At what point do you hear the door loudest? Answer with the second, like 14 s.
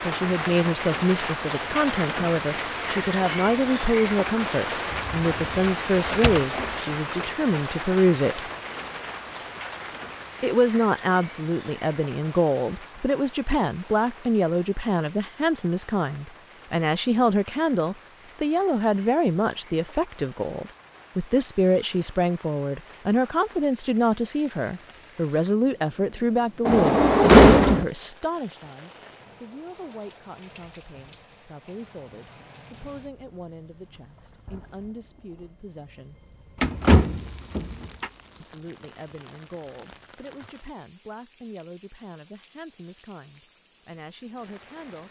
27 s.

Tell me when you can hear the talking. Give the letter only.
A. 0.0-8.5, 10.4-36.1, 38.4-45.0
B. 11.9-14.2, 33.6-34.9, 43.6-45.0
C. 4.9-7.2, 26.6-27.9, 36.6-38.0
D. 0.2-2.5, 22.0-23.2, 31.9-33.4
A.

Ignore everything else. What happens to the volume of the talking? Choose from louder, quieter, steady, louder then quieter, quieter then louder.
quieter.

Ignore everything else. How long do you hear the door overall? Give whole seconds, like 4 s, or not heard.
5 s.